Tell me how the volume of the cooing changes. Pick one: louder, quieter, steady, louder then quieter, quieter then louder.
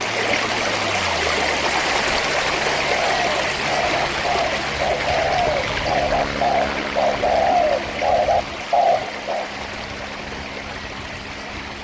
louder.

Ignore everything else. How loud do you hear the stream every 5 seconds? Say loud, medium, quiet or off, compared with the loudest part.
loud, medium, medium.